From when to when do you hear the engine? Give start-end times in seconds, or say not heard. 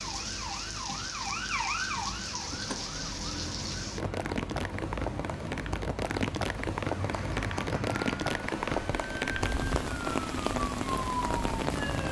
7.0-8.6.